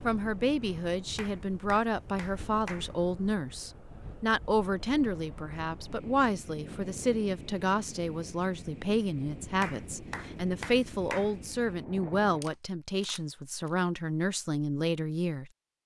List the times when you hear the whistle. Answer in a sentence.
The whistle can't be heard in this clip.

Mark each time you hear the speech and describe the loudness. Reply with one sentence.
You can hear the speech from 0.0 to 15.8 s, at a steady volume.